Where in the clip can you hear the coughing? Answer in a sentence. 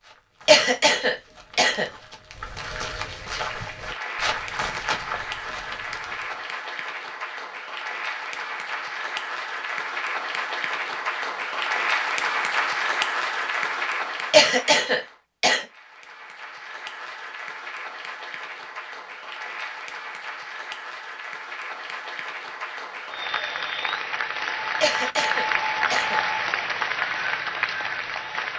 You can hear the coughing from 0.5 to 1.9 s, from 14.3 to 15.7 s and from 24.8 to 26.2 s.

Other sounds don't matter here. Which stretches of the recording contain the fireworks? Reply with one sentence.
The fireworks can't be heard in this clip.